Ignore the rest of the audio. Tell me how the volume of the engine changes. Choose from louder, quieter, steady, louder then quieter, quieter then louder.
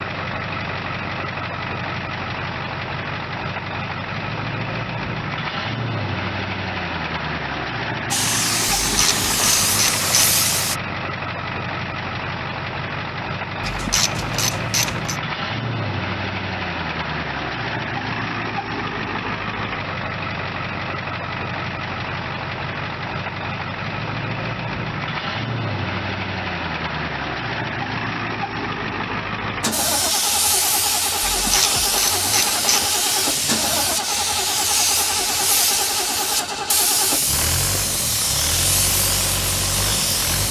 steady.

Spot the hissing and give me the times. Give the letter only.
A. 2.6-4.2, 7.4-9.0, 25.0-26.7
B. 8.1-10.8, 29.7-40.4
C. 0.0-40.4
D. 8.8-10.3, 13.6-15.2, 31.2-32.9
B.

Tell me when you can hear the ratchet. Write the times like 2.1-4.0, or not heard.
8.8-10.3, 13.6-15.2, 31.2-32.9.